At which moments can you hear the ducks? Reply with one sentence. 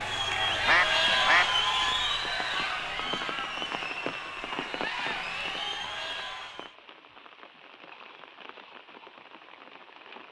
The ducks can be heard from 0.7 to 1.5 s.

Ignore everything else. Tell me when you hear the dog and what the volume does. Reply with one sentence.
You can't hear the dog here.